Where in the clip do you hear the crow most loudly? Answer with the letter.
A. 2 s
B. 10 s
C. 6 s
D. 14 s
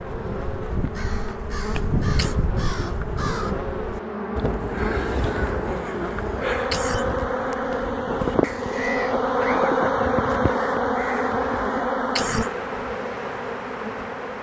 A.